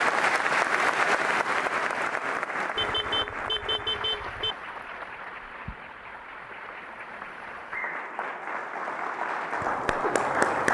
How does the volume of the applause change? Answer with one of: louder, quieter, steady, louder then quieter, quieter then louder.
quieter then louder.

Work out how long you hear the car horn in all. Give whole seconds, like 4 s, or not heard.
2 s.